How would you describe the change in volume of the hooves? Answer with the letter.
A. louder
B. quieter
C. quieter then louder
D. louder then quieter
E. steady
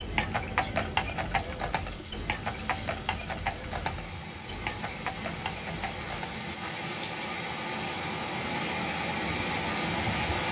B.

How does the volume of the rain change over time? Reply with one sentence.
The loudness of the rain goes up.